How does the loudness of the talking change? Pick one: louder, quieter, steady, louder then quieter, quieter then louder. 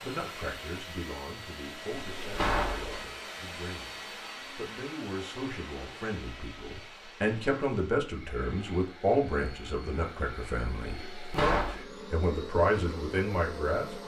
louder.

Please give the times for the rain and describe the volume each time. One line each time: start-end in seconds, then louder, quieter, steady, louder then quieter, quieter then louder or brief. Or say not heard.
not heard.